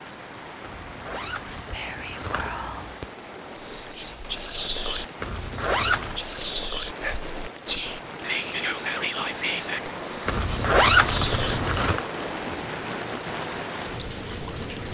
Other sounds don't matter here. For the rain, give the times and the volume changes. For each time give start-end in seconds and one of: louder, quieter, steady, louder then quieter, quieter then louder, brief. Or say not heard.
0.0-14.8 louder.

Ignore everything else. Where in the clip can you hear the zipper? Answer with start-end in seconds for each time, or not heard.
0.6-2.5, 5.2-6.2, 10.2-12.0.